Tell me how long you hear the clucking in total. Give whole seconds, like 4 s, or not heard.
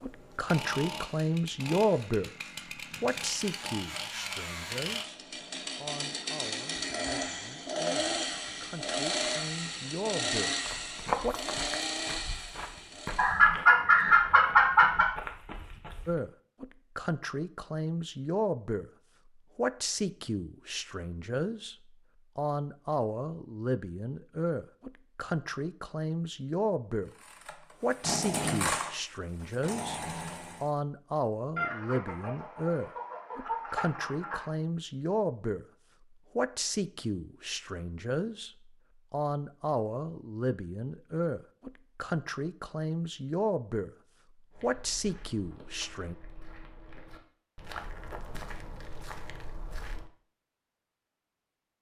5 s.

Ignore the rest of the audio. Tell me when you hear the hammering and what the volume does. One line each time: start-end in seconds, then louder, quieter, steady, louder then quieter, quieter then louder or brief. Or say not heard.
not heard.